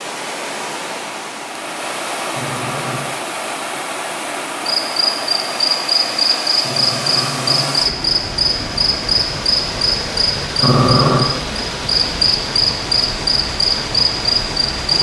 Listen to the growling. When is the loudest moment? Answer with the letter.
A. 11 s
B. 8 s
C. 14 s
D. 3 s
A.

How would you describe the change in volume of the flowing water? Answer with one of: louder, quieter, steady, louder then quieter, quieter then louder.
steady.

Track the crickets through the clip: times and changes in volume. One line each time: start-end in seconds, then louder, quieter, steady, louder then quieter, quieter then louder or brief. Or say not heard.
4.7-14.9 steady.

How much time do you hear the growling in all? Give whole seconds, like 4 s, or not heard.
3 s.